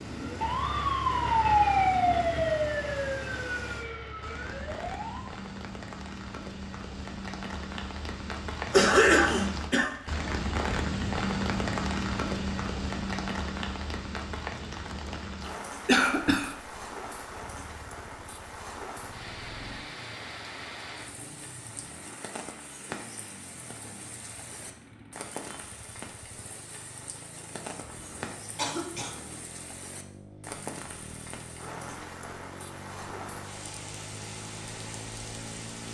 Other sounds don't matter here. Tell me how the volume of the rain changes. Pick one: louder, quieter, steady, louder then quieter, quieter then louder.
louder then quieter.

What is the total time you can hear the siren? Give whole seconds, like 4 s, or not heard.
5 s.